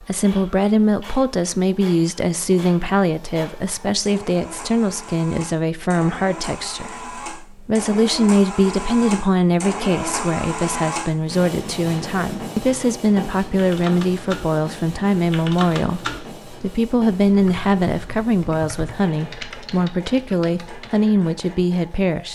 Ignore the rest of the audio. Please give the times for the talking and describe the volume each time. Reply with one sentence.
You can hear the talking from 0.0 to 22.2 s, at a steady volume.